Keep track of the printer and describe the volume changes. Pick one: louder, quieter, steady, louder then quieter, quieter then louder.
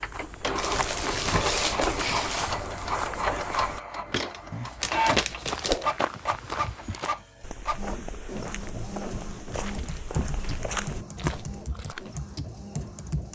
quieter.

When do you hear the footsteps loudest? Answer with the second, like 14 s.
5 s.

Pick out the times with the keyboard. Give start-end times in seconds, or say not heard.
9.7-13.3.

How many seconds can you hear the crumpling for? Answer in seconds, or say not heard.
5 s.